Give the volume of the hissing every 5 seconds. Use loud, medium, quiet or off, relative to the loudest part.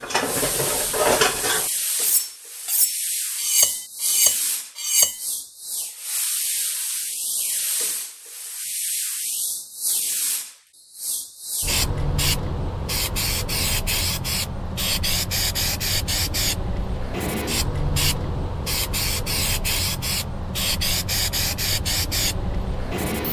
medium, medium, loud, loud, loud.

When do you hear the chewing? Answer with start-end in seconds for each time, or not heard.
not heard.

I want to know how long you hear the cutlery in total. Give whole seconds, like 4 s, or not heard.
5 s.